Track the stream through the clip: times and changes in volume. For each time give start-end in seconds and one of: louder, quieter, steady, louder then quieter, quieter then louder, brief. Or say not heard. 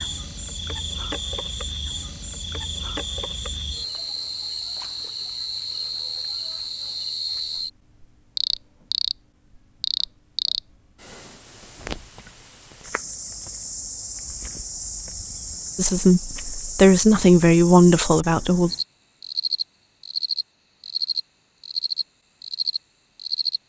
not heard.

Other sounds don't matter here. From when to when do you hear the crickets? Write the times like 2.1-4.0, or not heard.
0.0-23.6.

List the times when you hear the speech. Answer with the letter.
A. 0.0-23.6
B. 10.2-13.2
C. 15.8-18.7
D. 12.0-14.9
C.